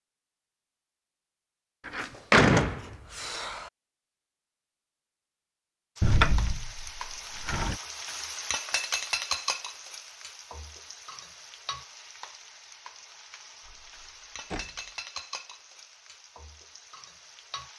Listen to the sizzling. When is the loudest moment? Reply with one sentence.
The volume of the sizzling peaks at 9 seconds.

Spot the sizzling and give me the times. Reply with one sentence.
The sizzling can be heard from 6.0 to 17.7 s.